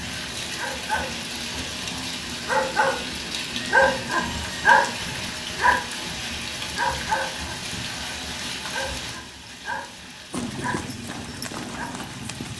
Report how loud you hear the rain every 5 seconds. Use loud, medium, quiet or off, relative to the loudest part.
loud, loud, medium.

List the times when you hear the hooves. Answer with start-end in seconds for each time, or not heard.
10.3-12.5.